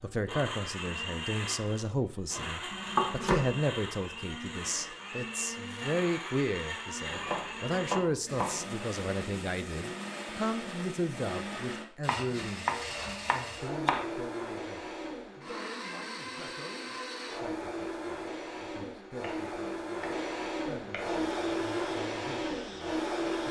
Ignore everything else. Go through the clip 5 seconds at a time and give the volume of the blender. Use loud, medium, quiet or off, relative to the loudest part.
medium, medium, medium, medium, loud.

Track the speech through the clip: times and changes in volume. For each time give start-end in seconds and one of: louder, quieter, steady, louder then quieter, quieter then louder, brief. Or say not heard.
0.0-23.4 quieter.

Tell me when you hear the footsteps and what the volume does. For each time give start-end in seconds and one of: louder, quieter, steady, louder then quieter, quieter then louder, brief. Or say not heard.
not heard.